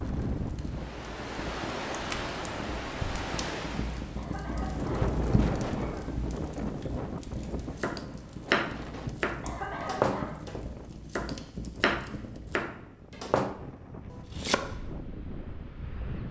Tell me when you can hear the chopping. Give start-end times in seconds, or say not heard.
7.8-14.8.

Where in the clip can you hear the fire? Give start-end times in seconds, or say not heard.
0.0-12.6.